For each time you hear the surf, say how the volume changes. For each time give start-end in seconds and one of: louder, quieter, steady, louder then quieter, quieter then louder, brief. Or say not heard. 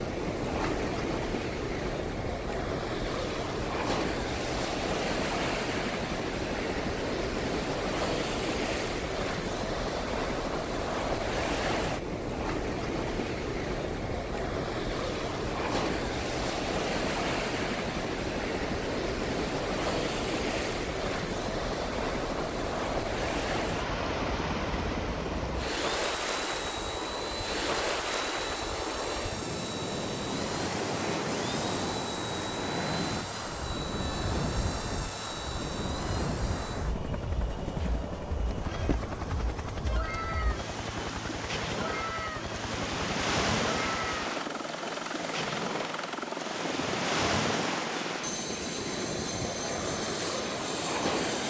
0.0-51.4 steady.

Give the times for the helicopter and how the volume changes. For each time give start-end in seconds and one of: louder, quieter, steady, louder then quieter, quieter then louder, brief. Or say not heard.
0.0-51.4 steady.